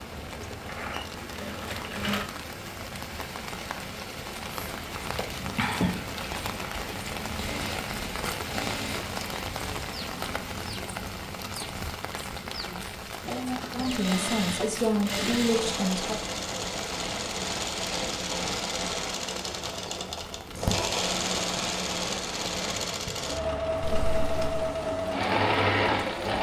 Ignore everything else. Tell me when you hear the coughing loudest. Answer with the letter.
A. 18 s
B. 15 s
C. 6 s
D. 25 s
C.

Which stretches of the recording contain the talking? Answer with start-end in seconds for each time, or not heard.
12.6-16.1.